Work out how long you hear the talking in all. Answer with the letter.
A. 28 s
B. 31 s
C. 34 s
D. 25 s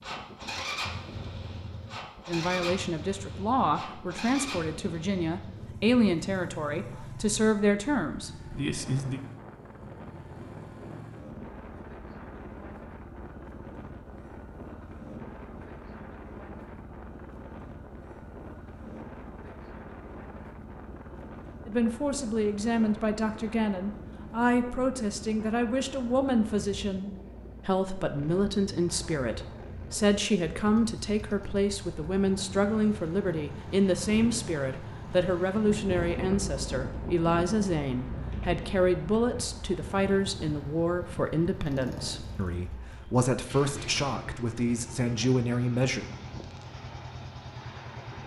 B.